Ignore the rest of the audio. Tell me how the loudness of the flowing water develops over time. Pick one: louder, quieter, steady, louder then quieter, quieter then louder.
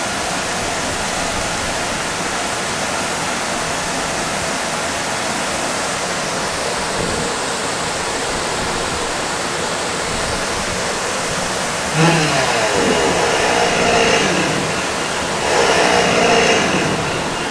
steady.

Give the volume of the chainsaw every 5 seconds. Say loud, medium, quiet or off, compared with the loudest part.
off, off, loud, loud.